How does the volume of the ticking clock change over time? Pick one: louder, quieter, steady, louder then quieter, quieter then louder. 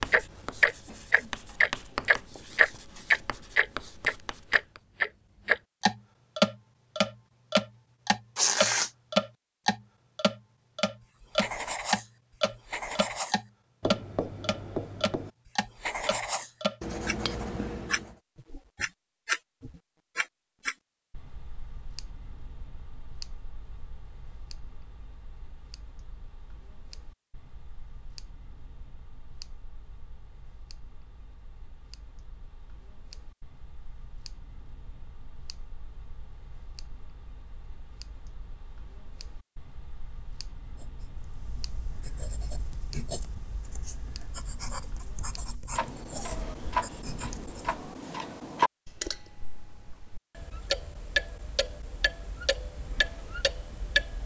quieter then louder.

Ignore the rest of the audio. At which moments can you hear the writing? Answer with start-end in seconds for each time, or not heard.
0.0-4.8, 11.2-18.1, 40.8-47.7.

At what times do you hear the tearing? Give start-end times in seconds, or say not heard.
8.3-8.9.